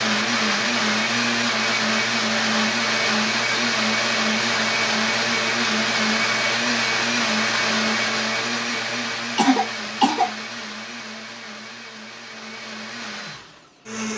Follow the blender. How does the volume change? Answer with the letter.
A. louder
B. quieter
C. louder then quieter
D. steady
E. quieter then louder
B.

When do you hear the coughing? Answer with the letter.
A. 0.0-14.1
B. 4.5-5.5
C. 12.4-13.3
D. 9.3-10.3
D.